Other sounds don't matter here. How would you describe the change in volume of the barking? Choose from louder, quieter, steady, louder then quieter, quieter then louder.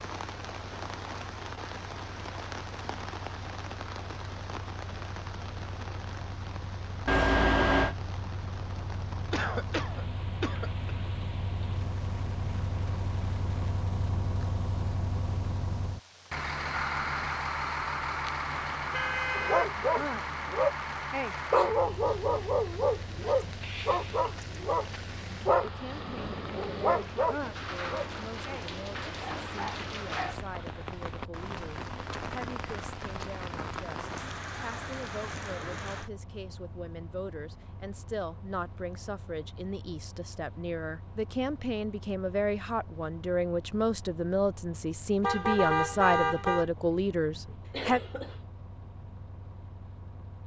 quieter.